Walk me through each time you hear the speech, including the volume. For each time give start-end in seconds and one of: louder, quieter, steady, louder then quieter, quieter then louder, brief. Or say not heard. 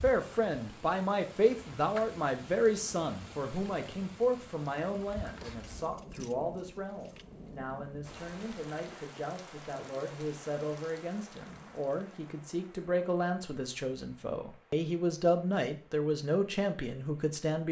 0.0-17.6 quieter then louder.